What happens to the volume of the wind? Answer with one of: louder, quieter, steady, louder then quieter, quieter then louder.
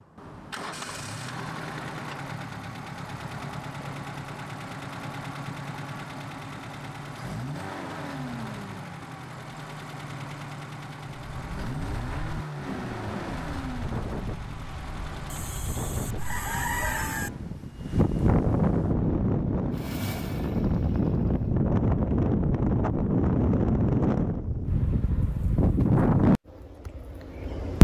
louder.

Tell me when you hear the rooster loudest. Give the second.
17 s.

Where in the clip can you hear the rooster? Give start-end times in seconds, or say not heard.
15.3-17.3.